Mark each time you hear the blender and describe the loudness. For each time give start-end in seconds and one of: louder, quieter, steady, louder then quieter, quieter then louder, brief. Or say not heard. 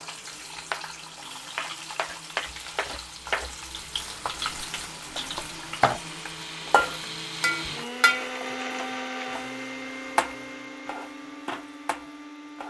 0.0-12.6 louder then quieter.